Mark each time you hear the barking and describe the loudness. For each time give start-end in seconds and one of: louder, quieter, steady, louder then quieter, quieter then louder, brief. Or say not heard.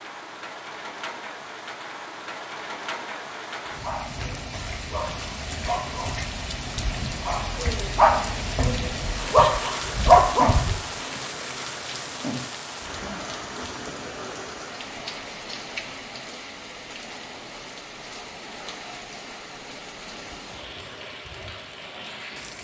3.6-10.8 louder.